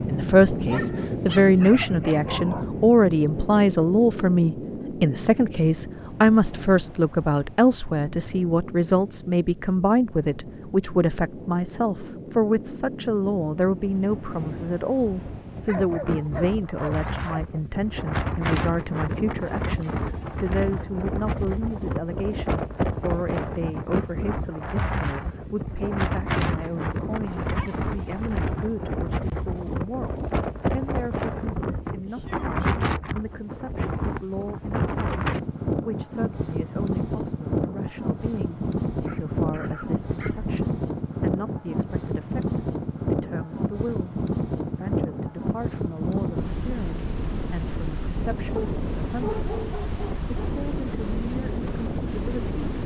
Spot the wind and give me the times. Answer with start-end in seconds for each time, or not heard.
0.0-52.8.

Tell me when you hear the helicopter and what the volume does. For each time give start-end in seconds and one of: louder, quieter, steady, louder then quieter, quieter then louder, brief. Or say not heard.
not heard.